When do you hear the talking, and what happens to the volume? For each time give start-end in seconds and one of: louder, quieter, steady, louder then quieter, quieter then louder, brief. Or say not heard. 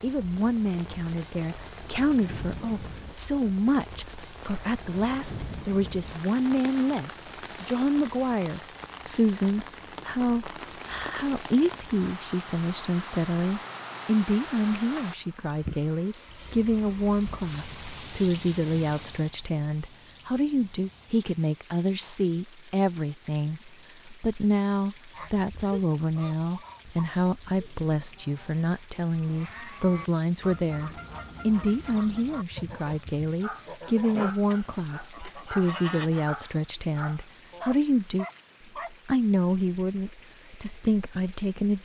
0.0-38.2 steady
38.9-41.8 brief.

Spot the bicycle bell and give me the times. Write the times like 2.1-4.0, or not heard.
not heard.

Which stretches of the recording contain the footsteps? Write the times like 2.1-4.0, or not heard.
not heard.